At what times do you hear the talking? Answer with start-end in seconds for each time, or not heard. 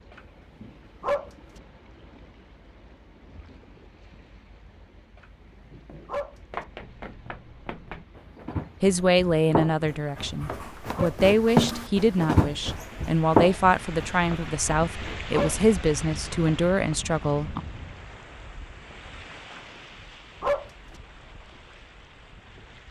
8.8-17.6.